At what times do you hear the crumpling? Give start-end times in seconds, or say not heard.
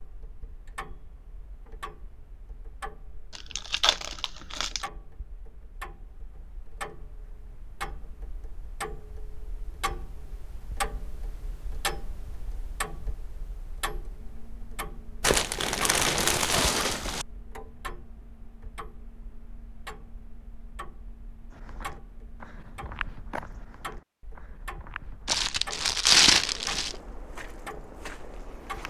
3.4-4.8, 15.2-17.2, 25.2-26.9.